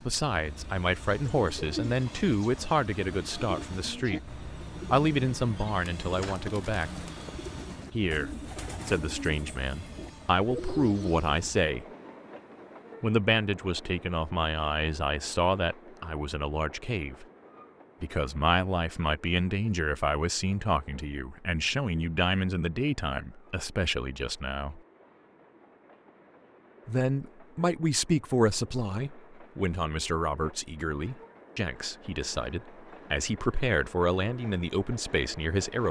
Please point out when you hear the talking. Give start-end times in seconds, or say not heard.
0.1-7.0, 7.9-11.8, 13.0-17.2, 18.0-24.8, 26.9-35.8.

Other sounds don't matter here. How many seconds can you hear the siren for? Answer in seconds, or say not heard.
not heard.